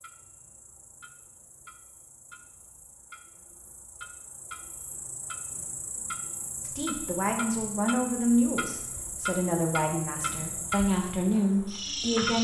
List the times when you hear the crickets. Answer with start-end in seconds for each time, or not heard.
0.0-12.4.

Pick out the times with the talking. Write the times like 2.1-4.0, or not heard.
6.6-12.4.